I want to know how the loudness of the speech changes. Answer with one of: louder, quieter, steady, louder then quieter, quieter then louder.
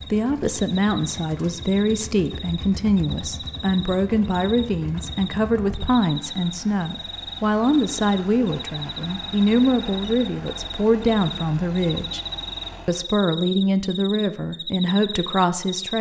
steady.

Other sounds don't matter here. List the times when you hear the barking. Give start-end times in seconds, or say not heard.
not heard.